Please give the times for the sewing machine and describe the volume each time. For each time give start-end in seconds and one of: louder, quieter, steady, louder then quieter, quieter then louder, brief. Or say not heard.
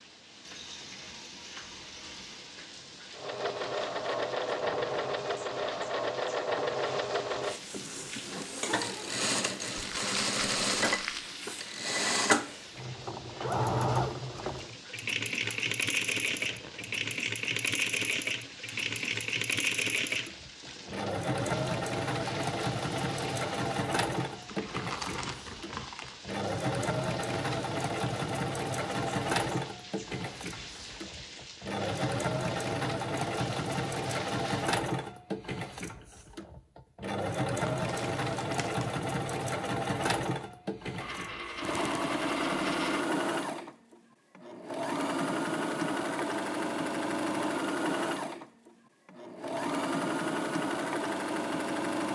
3.1-52.1 steady.